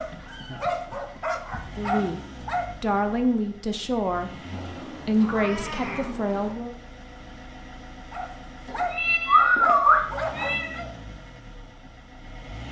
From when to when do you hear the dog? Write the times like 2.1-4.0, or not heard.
0.0-3.2, 8.1-10.9.